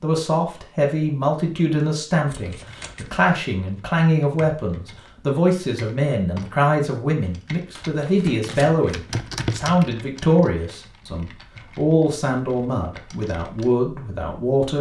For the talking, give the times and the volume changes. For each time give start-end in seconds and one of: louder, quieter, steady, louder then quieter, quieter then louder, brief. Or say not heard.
0.0-14.7 steady.